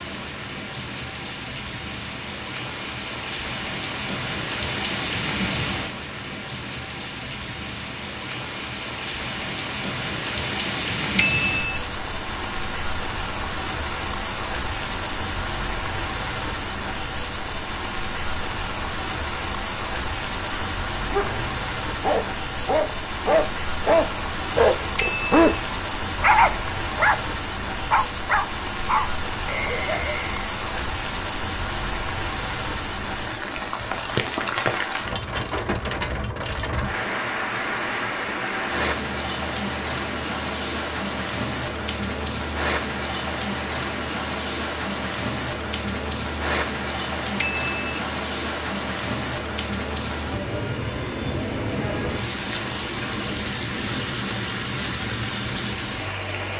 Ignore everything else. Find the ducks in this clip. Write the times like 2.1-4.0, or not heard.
not heard.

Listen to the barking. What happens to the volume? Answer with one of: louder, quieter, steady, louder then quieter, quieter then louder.
louder then quieter.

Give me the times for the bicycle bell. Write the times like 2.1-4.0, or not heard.
11.2-11.8, 24.9-25.6, 47.4-48.0.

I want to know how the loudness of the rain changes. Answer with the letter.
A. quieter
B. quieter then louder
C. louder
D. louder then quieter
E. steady
E.